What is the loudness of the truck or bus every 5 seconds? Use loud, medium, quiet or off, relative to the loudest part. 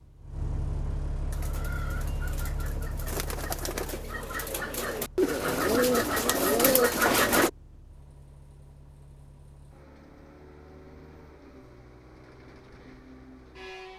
loud, quiet, medium.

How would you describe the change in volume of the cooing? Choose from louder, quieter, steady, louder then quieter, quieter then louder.
louder.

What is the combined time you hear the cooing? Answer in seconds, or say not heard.
6 s.